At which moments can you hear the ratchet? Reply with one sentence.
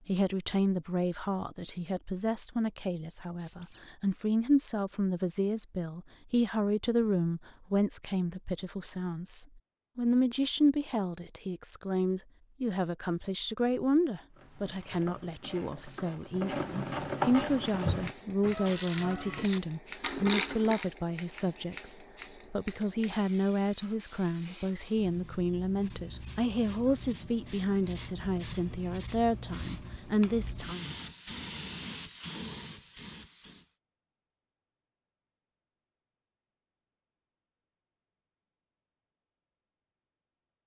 The ratchet can be heard from 14.3 to 20.9 s.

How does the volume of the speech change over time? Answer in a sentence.
The loudness of the speech stays about the same.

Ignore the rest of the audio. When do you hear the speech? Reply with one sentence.
You can hear the speech from 0.1 to 30.9 s.